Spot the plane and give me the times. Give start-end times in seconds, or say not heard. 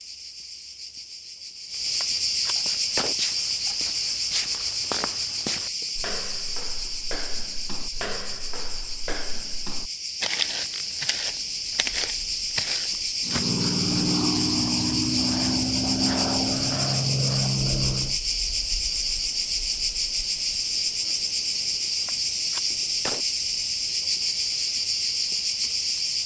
13.2-18.2.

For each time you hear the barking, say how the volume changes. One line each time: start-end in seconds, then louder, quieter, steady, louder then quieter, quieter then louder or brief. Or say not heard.
not heard.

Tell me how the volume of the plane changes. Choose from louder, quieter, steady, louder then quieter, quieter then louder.
steady.